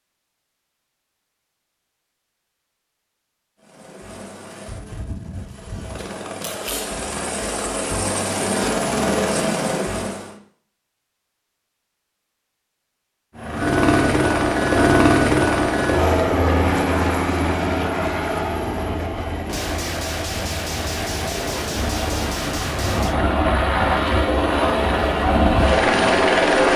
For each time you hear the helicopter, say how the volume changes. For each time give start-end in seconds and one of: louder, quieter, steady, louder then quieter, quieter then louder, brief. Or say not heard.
3.6-10.3 louder
13.3-26.7 quieter then louder.